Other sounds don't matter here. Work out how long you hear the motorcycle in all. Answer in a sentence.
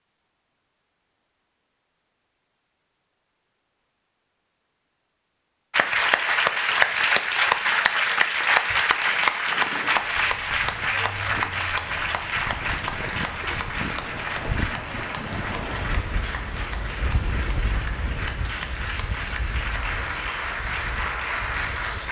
The motorcycle can't be heard in this clip.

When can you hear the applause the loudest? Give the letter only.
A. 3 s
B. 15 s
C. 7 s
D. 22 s
C.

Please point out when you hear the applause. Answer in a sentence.
The applause can be heard from 5.7 to 22.0 s.